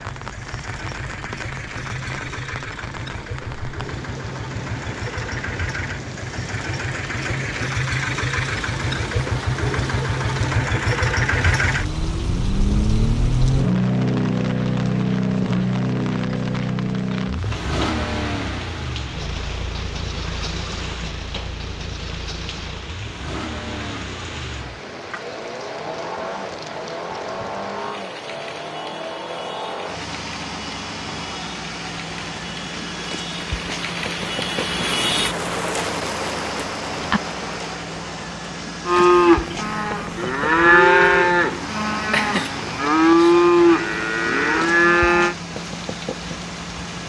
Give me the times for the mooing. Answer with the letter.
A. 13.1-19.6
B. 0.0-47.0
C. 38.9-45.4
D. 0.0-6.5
C.